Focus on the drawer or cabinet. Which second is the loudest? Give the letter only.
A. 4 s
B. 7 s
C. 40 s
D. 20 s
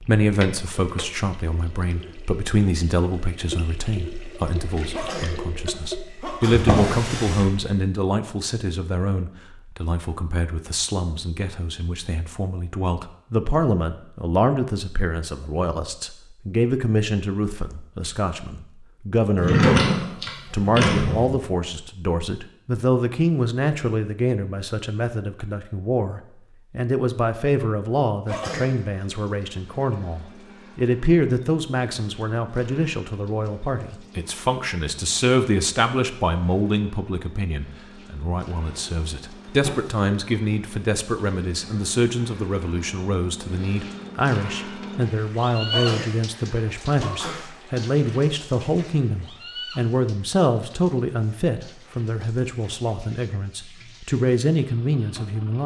D.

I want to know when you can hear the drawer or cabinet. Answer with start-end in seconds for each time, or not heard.
6.5-7.5, 19.4-21.4, 38.6-40.0.